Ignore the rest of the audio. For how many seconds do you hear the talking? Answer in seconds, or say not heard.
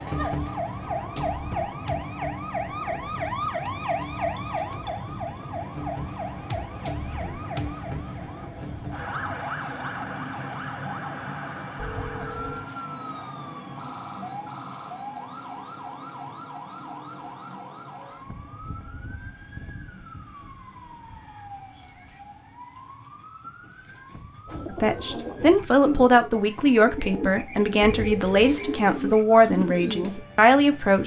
6 s.